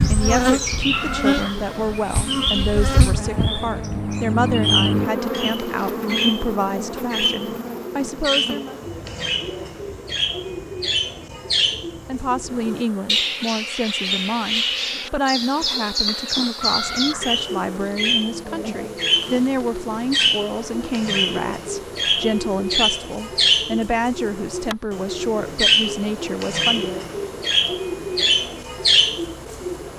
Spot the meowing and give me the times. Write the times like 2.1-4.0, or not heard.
0.9-1.6, 16.6-17.4.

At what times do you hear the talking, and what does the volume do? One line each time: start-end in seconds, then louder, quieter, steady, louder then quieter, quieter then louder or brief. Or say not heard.
0.1-8.8 steady
12.1-27.0 steady.